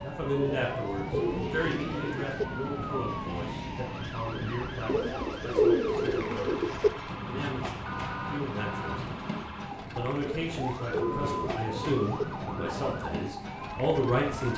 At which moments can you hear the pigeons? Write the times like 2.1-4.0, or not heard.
0.5-2.5, 4.8-6.9, 10.2-12.2.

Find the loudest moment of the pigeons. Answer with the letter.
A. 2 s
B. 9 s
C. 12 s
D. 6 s
D.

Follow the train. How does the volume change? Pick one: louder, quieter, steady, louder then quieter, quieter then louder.
steady.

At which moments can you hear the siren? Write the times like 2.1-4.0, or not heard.
0.0-14.5.